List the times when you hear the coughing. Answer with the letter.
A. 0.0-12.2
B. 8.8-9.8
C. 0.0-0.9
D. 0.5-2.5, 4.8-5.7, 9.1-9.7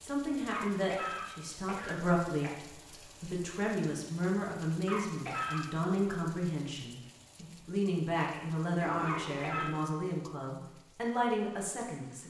D.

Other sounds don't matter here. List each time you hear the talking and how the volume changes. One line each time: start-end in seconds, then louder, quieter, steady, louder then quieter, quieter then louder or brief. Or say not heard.
0.0-12.2 steady.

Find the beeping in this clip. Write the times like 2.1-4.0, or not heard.
8.8-9.8.